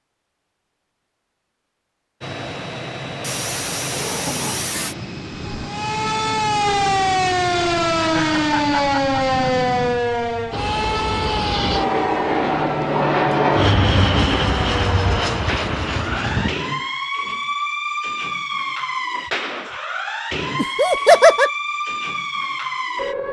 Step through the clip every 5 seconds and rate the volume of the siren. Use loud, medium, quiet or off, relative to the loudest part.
off, loud, medium, medium, medium.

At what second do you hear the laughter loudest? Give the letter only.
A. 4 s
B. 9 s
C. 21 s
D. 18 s
C.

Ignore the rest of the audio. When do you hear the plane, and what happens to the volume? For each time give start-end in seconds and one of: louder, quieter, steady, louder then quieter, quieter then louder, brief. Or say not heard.
2.2-16.6 louder.